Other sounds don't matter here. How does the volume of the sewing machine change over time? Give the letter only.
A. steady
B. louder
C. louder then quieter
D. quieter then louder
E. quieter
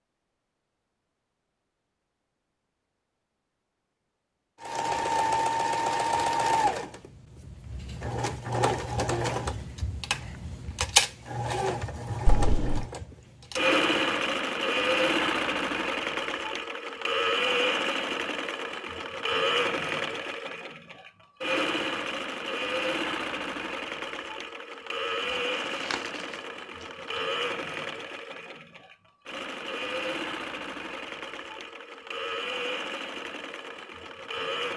E.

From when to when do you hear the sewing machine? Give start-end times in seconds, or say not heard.
4.6-34.7.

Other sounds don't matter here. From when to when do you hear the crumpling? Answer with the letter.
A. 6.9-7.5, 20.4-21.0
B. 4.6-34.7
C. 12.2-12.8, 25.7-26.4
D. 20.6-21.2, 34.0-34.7
C.